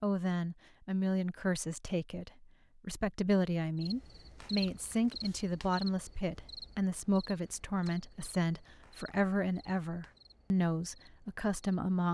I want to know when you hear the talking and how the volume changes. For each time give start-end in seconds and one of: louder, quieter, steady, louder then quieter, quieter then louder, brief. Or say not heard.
0.0-12.0 steady.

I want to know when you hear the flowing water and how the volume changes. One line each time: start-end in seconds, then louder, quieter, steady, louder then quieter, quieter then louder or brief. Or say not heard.
not heard.